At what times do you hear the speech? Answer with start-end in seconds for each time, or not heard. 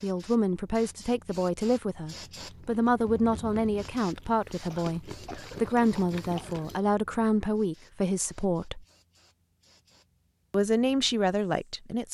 0.0-8.8, 10.5-12.1.